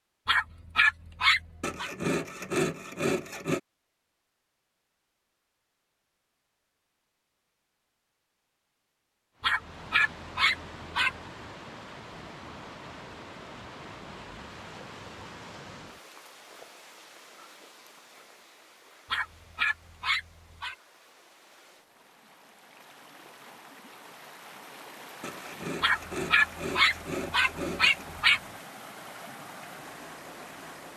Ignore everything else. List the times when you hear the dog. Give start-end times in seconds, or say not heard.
0.2-1.9, 9.4-11.2, 19.1-20.8, 25.8-28.4.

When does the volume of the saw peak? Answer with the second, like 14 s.
3 s.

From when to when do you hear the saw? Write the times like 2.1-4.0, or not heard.
1.6-3.6, 25.2-28.1.